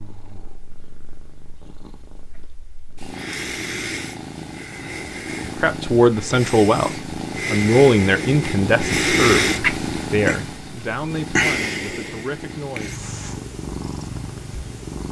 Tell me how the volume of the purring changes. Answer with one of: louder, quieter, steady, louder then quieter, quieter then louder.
louder then quieter.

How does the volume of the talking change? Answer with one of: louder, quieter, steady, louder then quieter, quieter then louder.
quieter.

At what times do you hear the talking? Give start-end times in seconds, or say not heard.
5.5-12.9.